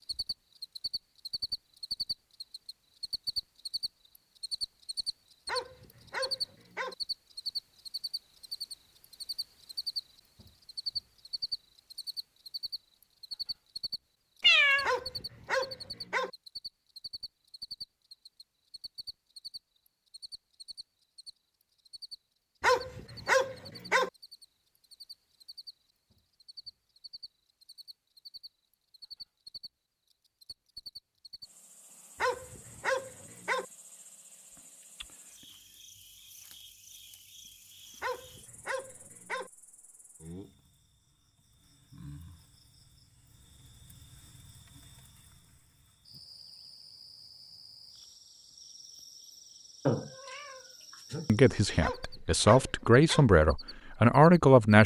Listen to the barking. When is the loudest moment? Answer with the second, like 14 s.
23 s.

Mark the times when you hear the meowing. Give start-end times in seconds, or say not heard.
14.4-14.9, 49.9-51.8.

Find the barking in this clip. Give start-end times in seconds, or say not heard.
5.5-7.0, 14.8-16.3, 22.6-24.1, 32.2-33.6, 38.0-39.5, 51.8-53.3.